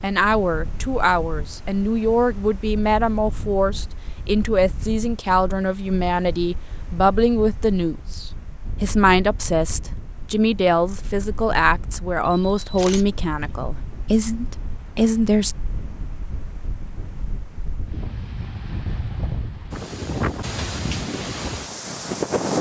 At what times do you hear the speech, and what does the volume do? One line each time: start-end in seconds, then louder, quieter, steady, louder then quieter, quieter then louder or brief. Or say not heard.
0.0-15.6 steady.